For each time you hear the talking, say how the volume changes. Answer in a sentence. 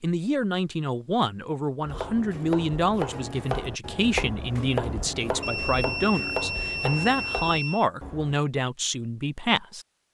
You can hear the talking from 0.0 to 9.8 s, at a steady volume.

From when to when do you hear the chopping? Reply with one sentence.
The chopping can be heard from 1.8 to 8.4 s.